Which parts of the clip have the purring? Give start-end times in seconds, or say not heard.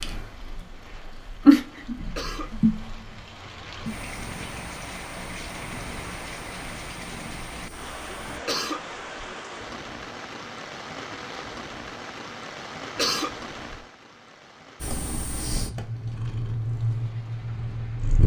0.0-8.4, 14.8-18.2.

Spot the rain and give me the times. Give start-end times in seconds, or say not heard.
0.1-18.2.